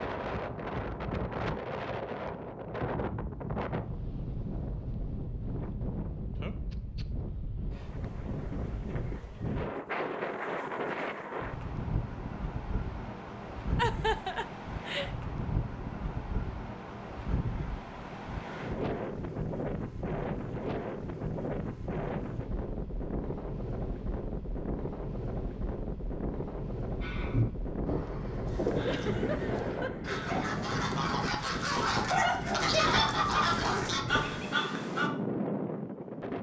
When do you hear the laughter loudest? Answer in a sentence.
The volume of the laughter peaks at 14 seconds.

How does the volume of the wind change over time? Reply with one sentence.
The loudness of the wind stays about the same.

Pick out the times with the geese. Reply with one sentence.
The geese can be heard from 27.0 to 35.1 s.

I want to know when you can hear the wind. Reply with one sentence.
The wind can be heard from 0.0 to 36.3 s.